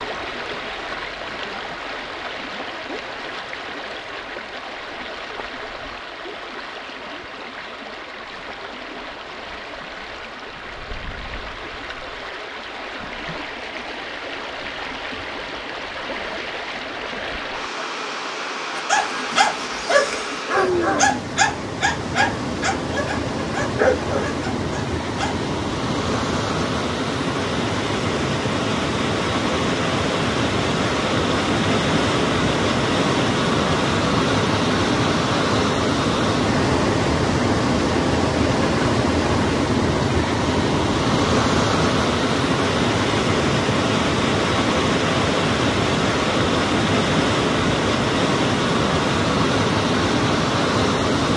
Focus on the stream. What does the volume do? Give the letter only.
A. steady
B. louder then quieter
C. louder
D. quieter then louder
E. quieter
C.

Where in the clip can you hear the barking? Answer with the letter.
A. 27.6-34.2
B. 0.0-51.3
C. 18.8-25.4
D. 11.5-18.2
C.